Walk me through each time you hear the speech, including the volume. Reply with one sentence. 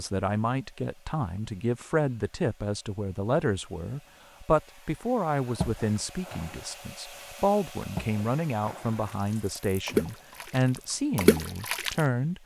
You can hear the speech from 0.0 to 12.4 s, at a steady volume.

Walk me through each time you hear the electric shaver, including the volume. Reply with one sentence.
You can't hear the electric shaver here.